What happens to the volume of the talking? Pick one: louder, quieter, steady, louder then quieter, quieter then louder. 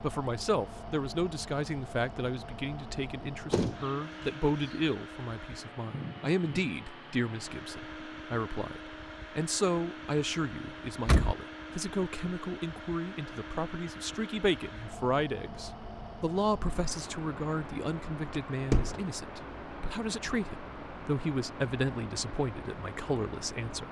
steady.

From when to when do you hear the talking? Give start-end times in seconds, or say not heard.
0.0-23.8.